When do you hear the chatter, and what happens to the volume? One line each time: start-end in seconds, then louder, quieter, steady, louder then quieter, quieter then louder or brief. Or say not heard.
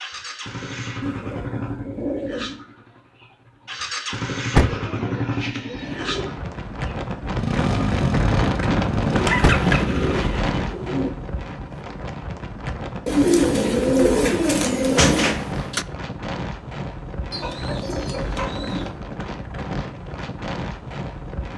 not heard.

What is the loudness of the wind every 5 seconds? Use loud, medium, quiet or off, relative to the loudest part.
off, loud, medium, medium, medium.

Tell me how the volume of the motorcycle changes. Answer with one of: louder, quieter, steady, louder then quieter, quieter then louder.
louder.